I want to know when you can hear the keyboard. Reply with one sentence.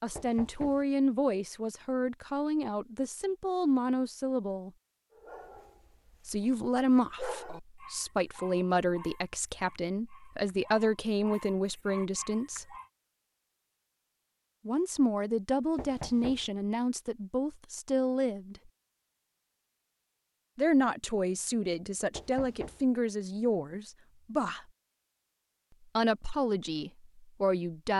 The keyboard can't be heard in this clip.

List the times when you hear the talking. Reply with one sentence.
The talking can be heard from 0.0 to 4.7 s, from 6.2 to 12.8 s, from 14.7 to 18.6 s, from 20.6 to 24.6 s and from 25.9 to 27.9 s.